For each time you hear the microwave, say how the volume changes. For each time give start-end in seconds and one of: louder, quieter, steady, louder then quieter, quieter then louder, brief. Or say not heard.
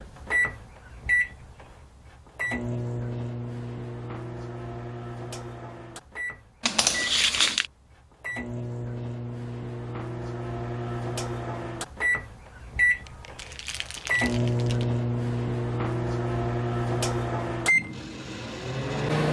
0.0-19.2 quieter then louder.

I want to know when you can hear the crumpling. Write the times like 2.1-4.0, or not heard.
6.6-7.7, 13.1-14.8.